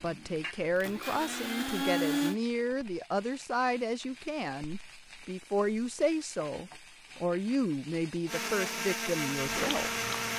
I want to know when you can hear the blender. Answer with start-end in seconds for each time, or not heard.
0.0-2.4, 8.2-10.3.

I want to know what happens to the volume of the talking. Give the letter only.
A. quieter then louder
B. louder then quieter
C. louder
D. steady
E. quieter
D.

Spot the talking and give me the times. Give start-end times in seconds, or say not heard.
0.0-9.9.